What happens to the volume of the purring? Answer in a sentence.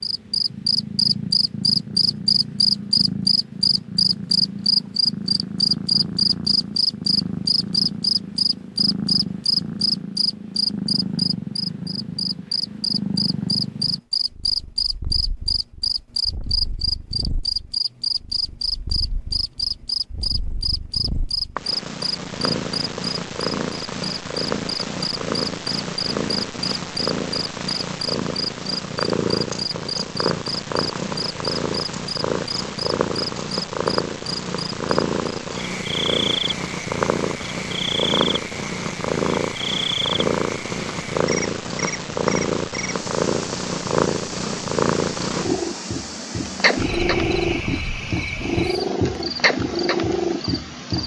The loudness of the purring goes up.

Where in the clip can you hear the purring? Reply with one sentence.
The purring can be heard from 0.0 to 51.0 s.